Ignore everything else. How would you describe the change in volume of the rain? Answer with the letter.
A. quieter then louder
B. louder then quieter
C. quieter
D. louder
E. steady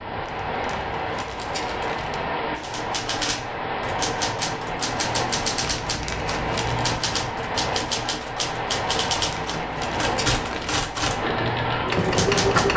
E.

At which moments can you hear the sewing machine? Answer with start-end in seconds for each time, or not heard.
11.2-12.7.